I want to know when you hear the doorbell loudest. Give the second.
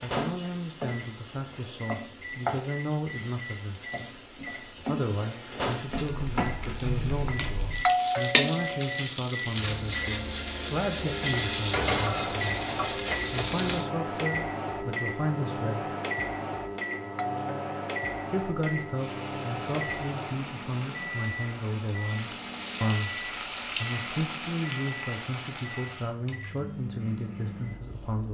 8 s.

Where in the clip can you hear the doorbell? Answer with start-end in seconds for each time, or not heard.
7.8-9.1, 17.1-18.4.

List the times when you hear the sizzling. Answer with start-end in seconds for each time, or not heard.
0.0-13.8, 18.9-26.1.